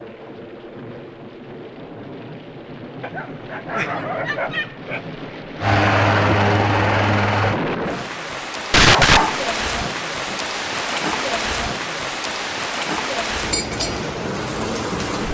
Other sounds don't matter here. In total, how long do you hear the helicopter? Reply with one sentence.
The helicopter can be heard for 2 seconds in total.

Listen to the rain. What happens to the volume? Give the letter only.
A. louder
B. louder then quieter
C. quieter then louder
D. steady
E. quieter
A.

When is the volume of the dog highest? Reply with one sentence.
The volume of the dog peaks at 9 seconds.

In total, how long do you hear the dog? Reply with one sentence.
The dog can be heard for 4 seconds in total.